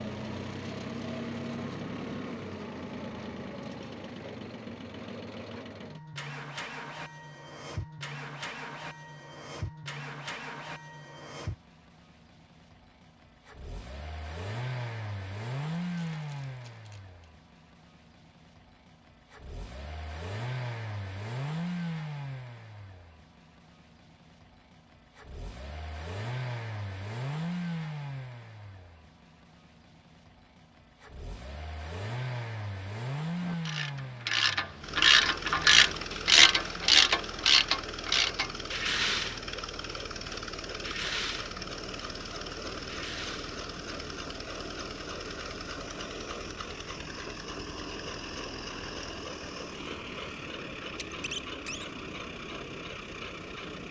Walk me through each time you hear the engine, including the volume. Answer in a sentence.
You can hear the engine from 0.0 to 53.8 s, at a steady volume.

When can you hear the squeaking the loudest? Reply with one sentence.
The loudest moment of the squeaking is at 51 seconds.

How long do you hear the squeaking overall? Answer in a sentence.
You can hear the squeaking for 2 seconds altogether.